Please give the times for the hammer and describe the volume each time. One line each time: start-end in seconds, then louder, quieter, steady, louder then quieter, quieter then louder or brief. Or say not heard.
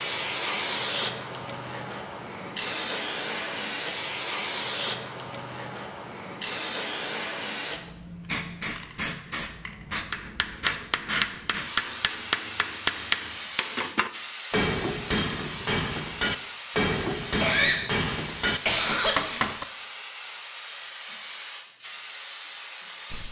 10.1-19.6 steady.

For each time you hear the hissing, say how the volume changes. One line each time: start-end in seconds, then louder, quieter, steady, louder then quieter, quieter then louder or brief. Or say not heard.
0.0-23.2 quieter.